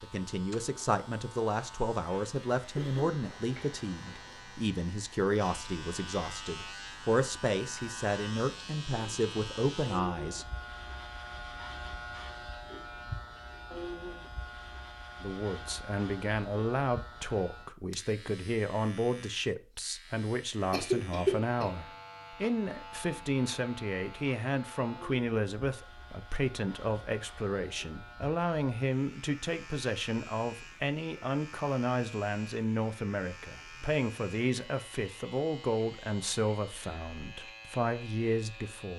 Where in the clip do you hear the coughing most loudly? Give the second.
21 s.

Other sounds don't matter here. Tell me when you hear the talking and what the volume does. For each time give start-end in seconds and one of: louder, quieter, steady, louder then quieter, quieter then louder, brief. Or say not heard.
0.0-10.4 steady
15.2-38.9 steady.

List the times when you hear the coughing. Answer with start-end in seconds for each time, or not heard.
2.8-3.2, 20.7-21.8.